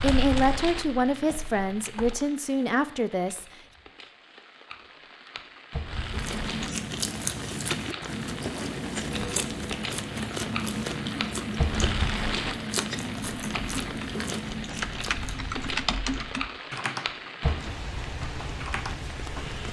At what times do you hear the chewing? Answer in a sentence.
You can hear the chewing from 6.0 to 16.4 s.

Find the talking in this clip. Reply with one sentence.
You can hear the talking from 0.0 to 3.5 s.